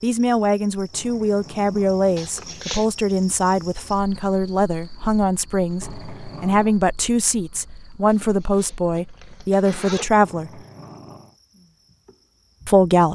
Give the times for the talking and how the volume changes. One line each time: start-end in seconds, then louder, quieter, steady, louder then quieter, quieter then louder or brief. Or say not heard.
0.0-10.6 steady
12.7-13.1 brief.